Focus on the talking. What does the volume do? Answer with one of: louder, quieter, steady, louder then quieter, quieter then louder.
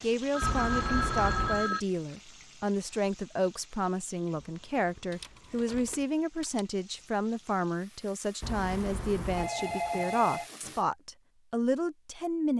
steady.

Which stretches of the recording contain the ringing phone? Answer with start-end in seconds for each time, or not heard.
0.3-1.8, 5.1-6.6, 9.3-10.5.